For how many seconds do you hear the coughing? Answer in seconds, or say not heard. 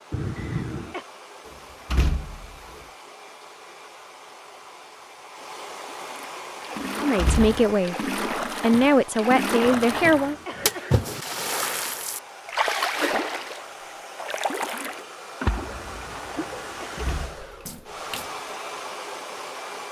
4 s.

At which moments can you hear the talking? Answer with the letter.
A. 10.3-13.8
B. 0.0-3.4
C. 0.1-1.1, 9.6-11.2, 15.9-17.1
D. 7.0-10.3
D.